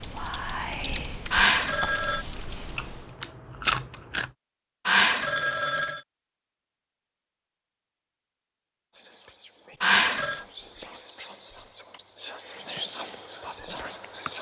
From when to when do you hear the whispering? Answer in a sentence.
The whispering can be heard from 0.0 to 1.9 s and from 8.9 to 14.3 s.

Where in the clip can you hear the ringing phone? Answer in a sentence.
You can hear the ringing phone from 1.3 to 2.2 s, from 4.8 to 6.0 s and from 9.8 to 10.4 s.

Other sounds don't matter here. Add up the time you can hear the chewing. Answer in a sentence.
You can hear the chewing for 2 seconds altogether.